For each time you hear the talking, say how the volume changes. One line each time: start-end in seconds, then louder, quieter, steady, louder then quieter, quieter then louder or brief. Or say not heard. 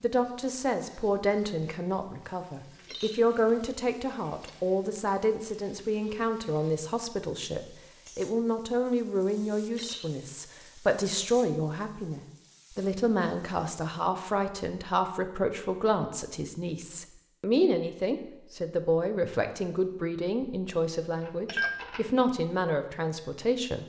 0.0-23.8 steady.